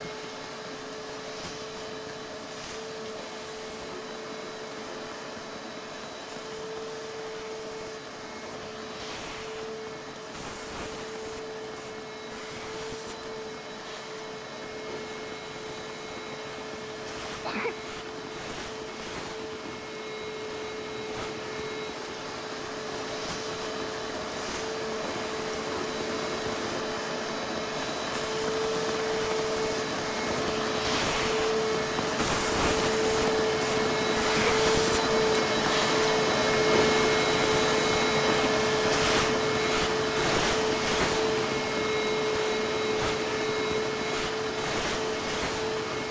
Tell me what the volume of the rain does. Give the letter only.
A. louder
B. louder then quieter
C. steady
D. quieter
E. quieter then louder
A.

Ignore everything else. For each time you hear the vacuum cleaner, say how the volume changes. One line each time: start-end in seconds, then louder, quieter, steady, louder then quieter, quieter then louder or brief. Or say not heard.
0.0-46.0 louder.